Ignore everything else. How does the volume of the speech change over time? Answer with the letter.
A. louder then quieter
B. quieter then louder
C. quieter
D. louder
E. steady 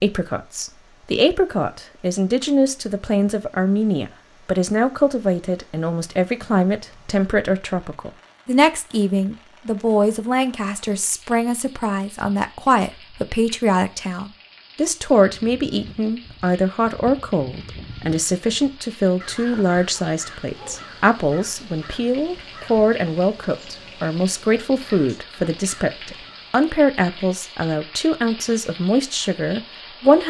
E.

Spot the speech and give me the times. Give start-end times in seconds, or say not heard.
0.0-30.2.